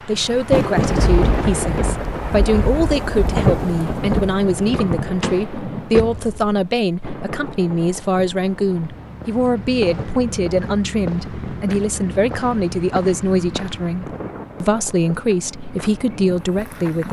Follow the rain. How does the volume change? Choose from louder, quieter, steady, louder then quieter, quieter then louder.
quieter.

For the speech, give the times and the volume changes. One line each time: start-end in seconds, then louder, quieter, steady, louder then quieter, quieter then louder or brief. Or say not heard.
0.1-17.0 steady.